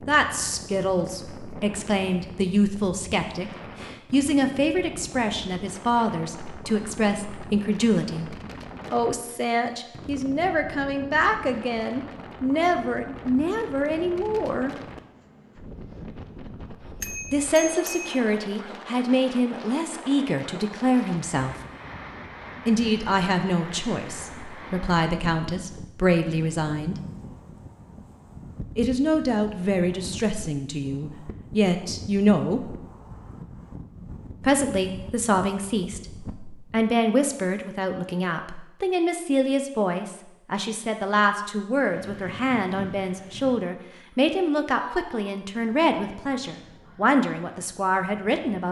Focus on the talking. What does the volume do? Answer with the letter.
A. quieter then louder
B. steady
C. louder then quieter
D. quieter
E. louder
B.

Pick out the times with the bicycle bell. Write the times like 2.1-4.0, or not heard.
17.0-18.2.